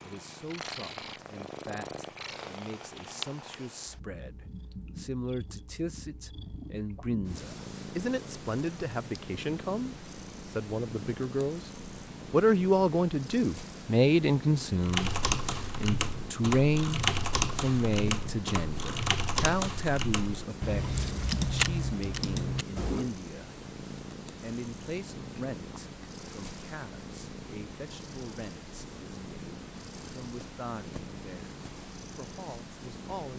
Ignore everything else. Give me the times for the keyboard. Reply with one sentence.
The keyboard can be heard from 14.8 to 23.1 s.